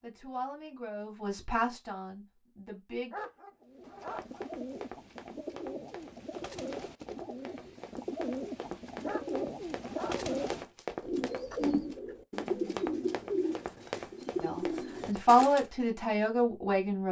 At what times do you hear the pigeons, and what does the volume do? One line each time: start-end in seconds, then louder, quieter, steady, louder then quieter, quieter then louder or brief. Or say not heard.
3.6-15.7 louder.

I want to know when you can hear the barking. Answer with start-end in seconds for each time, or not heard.
3.1-4.5, 9.1-10.2.